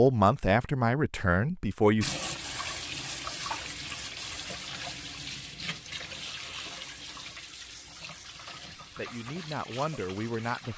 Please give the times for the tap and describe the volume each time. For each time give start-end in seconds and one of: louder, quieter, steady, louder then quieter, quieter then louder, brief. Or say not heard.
2.0-10.7 quieter.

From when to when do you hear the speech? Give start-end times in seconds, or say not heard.
0.0-2.1, 8.6-10.7.